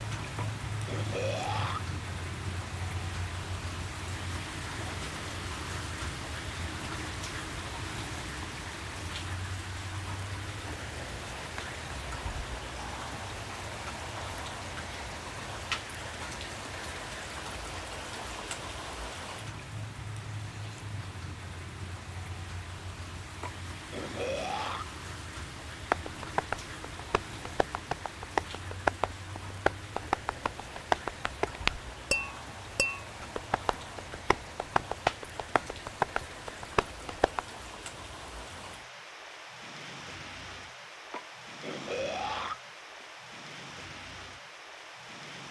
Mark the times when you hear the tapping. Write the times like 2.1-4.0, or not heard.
25.9-37.4.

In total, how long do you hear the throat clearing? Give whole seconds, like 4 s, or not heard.
5 s.